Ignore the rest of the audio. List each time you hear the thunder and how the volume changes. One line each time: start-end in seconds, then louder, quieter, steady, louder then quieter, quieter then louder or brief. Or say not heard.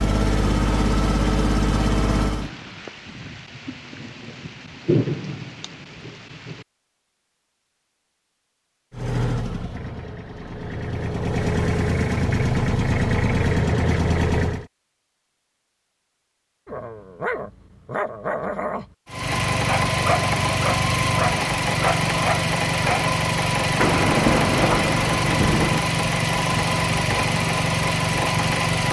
2.4-6.7 louder then quieter
23.8-25.8 brief.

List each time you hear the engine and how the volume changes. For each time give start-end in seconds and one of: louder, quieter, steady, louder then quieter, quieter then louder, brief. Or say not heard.
0.0-2.5 brief
8.9-14.7 louder
19.1-28.8 steady.